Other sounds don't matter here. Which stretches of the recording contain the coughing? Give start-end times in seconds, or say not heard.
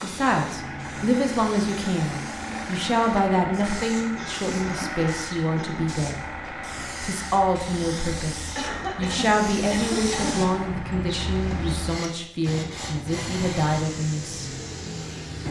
4.2-6.0, 8.6-10.4.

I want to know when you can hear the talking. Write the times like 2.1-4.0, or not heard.
0.0-6.2, 7.0-14.5.